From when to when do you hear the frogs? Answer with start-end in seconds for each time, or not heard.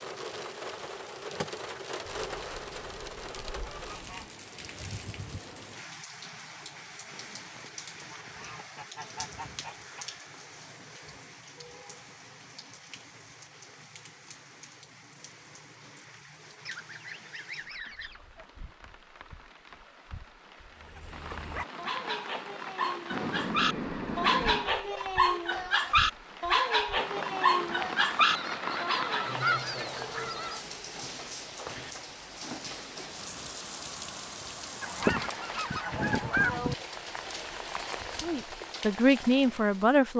not heard.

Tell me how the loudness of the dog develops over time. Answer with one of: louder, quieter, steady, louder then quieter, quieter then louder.
louder.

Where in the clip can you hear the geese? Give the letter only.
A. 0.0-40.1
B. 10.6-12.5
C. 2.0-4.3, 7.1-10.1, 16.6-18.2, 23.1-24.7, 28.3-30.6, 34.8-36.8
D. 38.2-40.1
C.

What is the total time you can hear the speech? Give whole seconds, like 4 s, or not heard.
2 s.